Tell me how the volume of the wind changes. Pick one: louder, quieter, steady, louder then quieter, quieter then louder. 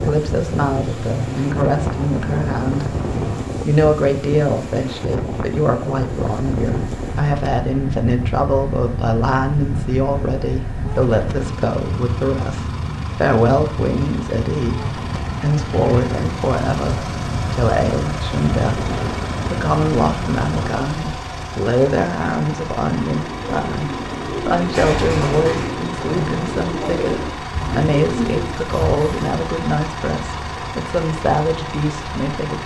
steady.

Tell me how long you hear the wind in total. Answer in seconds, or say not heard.
21 s.